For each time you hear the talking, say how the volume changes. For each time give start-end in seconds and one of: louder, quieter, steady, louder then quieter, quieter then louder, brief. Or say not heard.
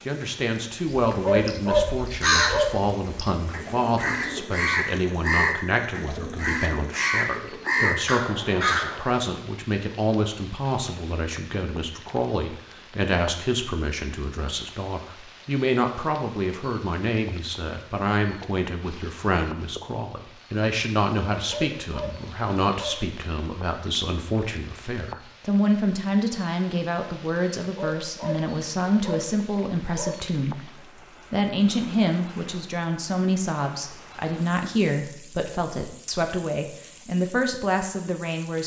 0.1-30.7 steady
31.3-38.6 steady.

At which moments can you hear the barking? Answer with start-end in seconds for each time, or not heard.
1.1-2.9, 21.4-23.1, 27.6-30.1.